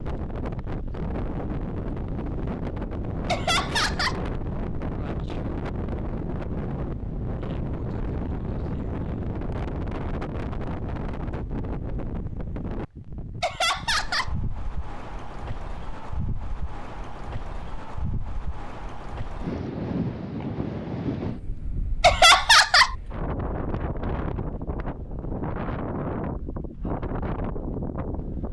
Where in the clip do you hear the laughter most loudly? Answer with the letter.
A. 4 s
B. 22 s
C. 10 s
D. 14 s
B.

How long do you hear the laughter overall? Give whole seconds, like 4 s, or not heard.
3 s.